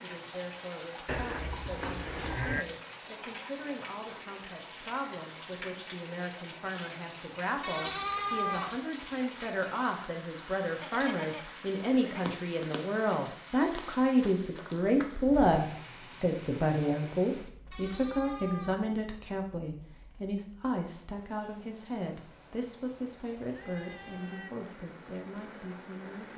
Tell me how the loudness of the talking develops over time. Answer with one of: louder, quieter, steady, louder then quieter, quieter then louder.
louder then quieter.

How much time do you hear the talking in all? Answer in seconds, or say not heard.
26 s.